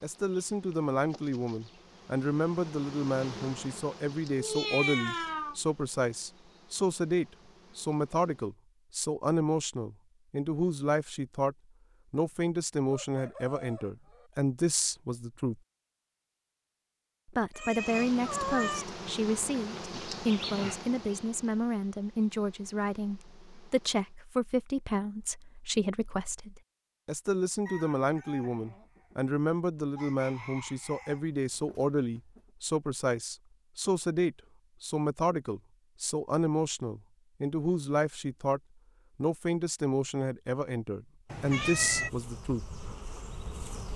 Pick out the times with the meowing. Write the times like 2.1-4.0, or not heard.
4.3-5.5, 17.6-18.9, 41.2-42.1.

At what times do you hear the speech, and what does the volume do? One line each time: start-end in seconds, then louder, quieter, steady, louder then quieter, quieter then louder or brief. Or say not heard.
0.0-15.6 steady
17.2-42.6 steady.